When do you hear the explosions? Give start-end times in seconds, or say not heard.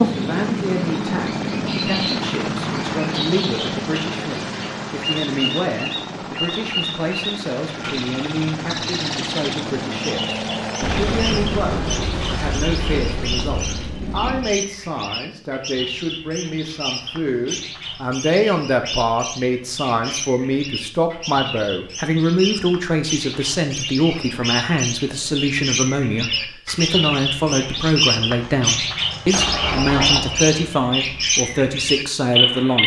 10.8-14.6, 29.1-30.8.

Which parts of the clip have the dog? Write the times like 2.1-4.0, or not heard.
not heard.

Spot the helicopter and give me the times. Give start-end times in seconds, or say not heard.
0.0-11.4.